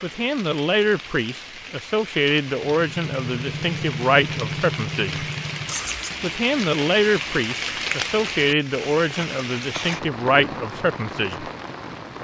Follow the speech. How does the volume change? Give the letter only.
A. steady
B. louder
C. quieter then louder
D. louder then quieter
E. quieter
A.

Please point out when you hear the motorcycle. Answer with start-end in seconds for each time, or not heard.
2.7-6.2.